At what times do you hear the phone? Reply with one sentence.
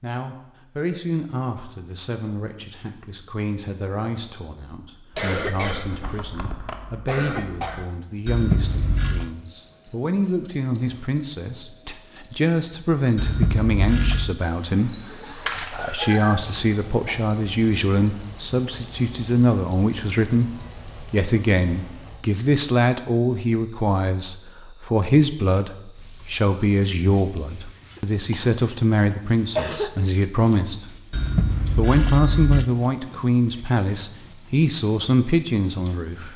You can hear the phone from 8.2 to 9.3 s, from 13.2 to 14.4 s and from 31.1 to 32.6 s.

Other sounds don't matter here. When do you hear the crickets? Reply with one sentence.
You can hear the crickets from 8.2 to 36.3 s.